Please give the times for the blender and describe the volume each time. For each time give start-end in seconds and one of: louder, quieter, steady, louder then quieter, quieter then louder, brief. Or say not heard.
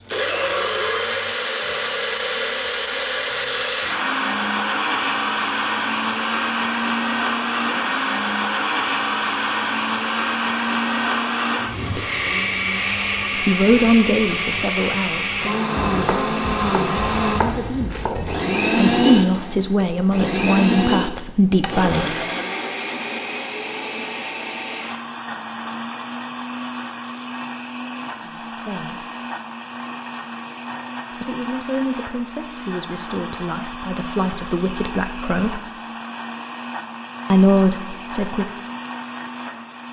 0.0-39.8 quieter.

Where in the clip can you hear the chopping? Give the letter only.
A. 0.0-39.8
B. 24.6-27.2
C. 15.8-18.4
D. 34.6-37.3
C.